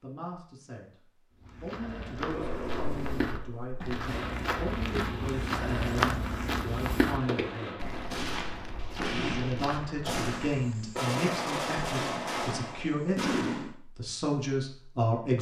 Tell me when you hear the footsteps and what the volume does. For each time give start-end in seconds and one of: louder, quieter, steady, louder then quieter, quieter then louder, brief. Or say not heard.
1.4-11.0 louder then quieter.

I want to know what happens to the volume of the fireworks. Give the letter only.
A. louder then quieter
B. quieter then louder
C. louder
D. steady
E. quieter
C.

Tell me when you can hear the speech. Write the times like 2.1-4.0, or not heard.
0.0-0.9, 1.6-7.8, 9.2-15.3.